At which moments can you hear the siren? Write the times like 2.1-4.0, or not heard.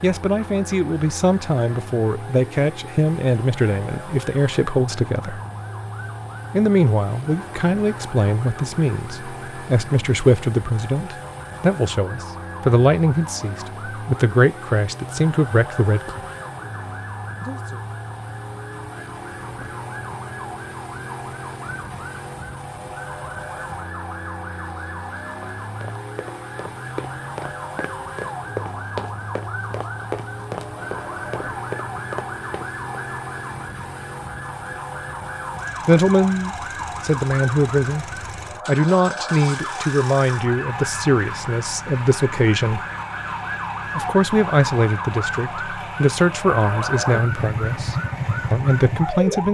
0.0-49.4.